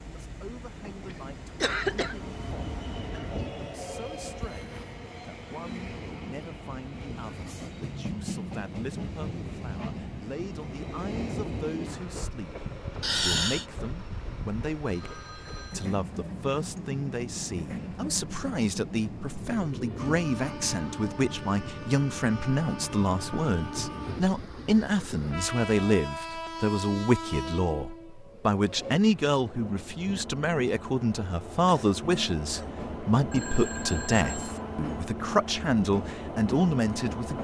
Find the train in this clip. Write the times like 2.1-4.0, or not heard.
0.0-37.4.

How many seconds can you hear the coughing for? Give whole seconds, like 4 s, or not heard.
3 s.